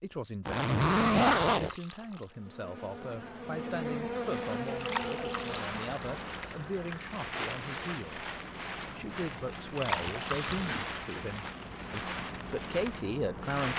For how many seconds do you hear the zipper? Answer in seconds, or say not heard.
2 s.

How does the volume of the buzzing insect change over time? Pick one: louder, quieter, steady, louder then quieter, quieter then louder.
louder then quieter.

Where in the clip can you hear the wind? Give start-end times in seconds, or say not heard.
4.3-13.7.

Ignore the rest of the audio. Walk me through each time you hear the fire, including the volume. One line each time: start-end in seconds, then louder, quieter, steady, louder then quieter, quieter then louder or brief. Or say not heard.
not heard.